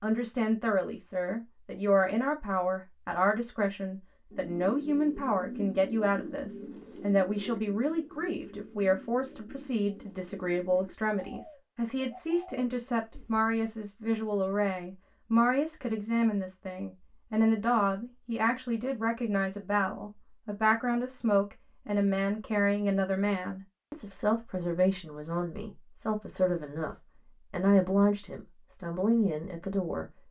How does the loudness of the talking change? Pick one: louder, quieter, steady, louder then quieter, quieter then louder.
steady.